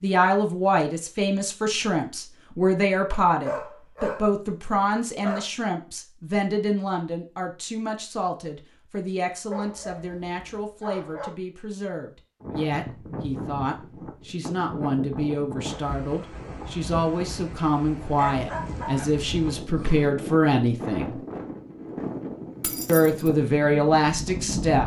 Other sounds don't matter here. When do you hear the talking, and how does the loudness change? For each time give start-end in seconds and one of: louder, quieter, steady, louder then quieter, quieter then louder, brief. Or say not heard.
0.0-21.1 quieter then louder
22.9-24.8 brief.